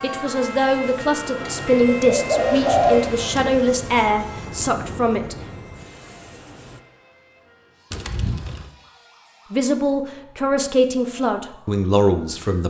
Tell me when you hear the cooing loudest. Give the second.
3 s.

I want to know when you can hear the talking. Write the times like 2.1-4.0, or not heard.
0.0-5.3, 9.5-12.6.